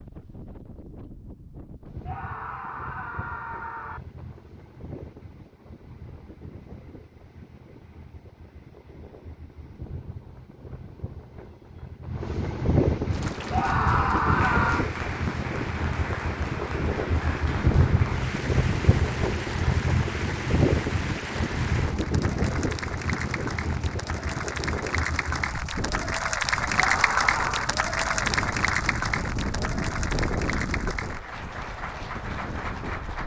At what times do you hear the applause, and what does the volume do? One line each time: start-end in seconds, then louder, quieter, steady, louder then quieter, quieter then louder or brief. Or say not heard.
13.1-33.2 louder then quieter.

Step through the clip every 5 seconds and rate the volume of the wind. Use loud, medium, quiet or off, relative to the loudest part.
quiet, quiet, loud, loud, loud, medium, medium.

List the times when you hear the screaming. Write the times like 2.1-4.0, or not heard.
2.0-4.0, 13.5-14.8, 26.8-27.8.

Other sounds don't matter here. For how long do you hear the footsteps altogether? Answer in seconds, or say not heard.
not heard.